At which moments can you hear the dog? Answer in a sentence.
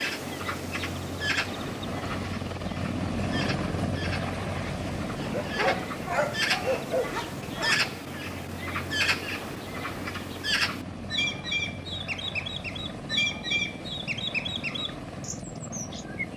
You can hear the dog from 5.2 to 7.8 s.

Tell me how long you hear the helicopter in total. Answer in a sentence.
The helicopter can be heard for 16 seconds in total.